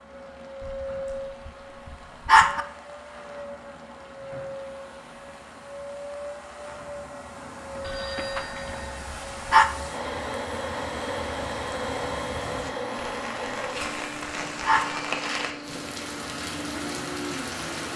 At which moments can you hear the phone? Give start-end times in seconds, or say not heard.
7.8-8.9.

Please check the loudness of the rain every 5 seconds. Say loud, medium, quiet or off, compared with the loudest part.
quiet, quiet, medium, loud.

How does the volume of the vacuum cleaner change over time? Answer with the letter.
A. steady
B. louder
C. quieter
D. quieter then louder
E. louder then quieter
E.